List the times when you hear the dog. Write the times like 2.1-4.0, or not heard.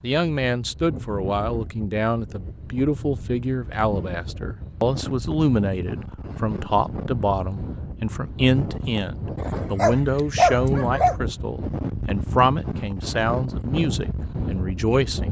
9.4-11.2.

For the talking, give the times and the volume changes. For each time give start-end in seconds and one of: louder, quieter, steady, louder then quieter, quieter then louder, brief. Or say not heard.
0.0-15.2 steady.